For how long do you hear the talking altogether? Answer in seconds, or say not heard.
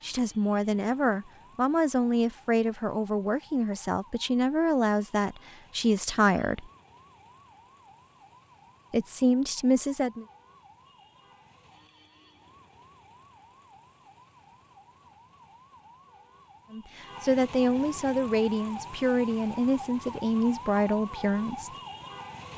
13 s.